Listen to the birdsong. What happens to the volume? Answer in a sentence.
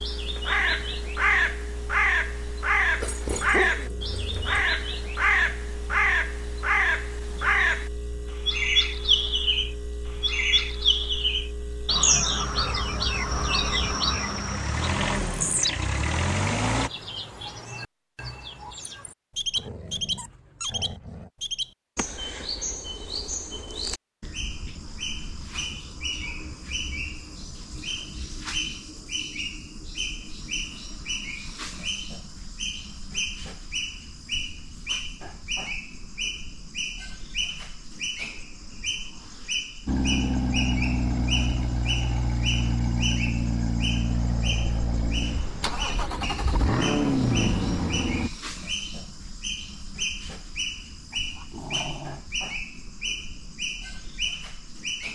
The volume of the birdsong goes down.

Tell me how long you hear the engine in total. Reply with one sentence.
You can hear the engine for 25 seconds altogether.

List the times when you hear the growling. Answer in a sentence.
The growling can be heard from 3.0 to 4.7 s, from 19.6 to 21.3 s and from 51.1 to 52.2 s.